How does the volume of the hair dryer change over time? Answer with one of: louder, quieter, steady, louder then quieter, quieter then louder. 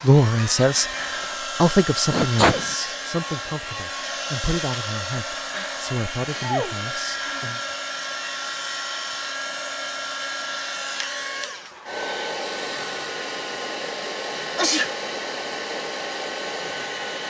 steady.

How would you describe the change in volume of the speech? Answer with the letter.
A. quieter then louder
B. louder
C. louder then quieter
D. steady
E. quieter
E.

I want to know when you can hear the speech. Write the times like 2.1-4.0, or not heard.
0.0-7.6.